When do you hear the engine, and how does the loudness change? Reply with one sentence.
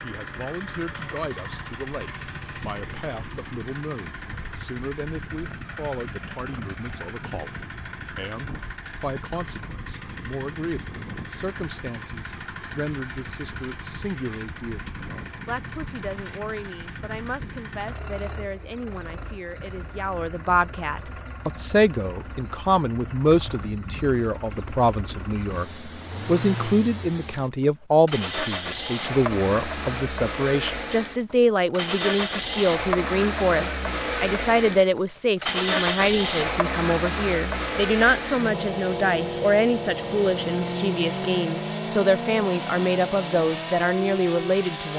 You can hear the engine from 0.0 to 44.9 s, getting louder.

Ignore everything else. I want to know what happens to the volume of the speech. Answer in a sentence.
The loudness of the speech goes up.